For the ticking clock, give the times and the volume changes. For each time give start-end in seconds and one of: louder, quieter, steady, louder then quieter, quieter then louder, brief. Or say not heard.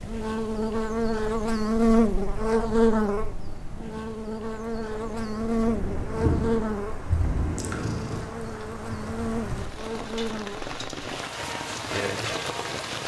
not heard.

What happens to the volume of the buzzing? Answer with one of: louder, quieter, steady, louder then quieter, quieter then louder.
quieter.